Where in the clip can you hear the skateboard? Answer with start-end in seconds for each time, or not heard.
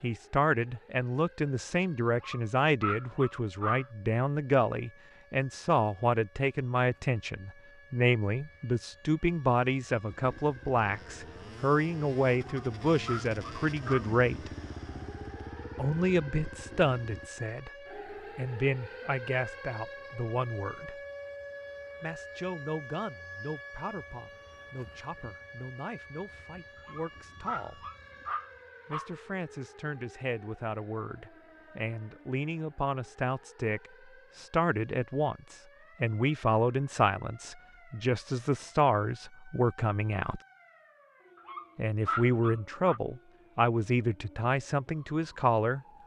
not heard.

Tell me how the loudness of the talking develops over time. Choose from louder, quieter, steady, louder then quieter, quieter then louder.
quieter then louder.